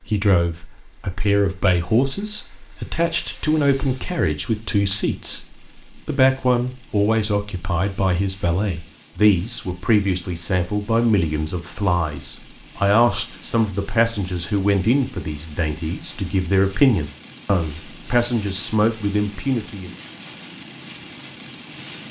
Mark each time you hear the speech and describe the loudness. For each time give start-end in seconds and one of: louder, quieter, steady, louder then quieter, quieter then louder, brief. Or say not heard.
0.1-19.9 steady.